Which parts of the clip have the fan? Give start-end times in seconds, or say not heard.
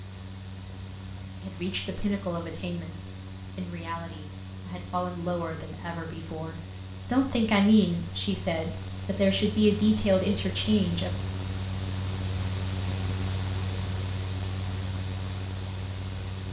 0.0-16.4.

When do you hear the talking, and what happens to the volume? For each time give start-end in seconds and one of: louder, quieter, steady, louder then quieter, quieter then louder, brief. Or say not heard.
1.4-11.1 louder.